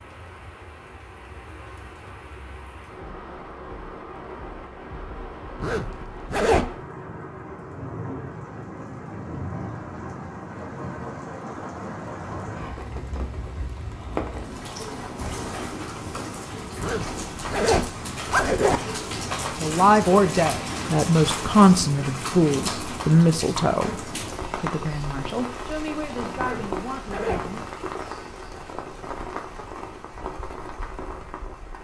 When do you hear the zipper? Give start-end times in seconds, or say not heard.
5.6-6.7, 16.8-18.8, 26.4-27.4.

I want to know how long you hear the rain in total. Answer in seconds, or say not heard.
32 s.